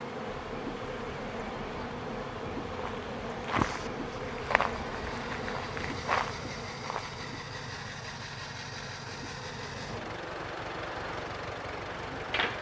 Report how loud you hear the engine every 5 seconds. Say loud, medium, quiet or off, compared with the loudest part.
medium, loud, loud.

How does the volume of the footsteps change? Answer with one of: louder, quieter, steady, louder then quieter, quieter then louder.
quieter then louder.